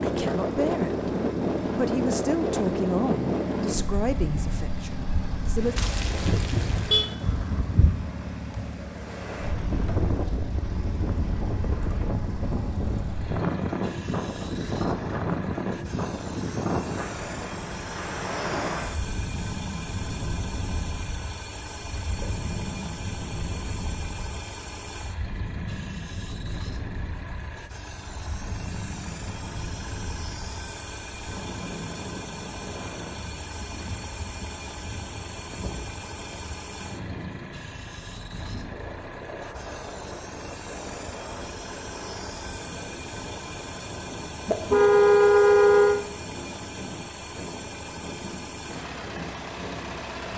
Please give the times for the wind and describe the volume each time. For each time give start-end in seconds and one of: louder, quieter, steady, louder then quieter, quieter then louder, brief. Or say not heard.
0.0-50.3 quieter.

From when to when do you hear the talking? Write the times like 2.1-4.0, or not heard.
0.0-1.1, 1.8-5.8.